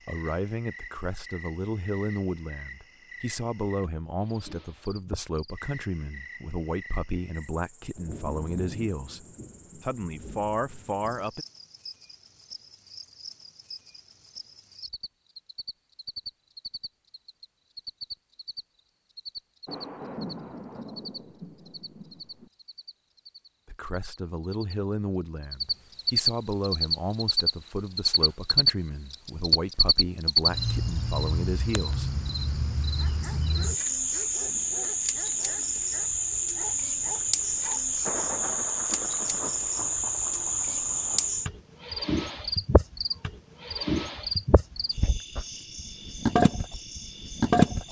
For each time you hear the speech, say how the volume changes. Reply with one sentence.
The speech can be heard from 0.1 to 11.4 s, at a steady volume; and from 23.6 to 32.2 s, at a steady volume.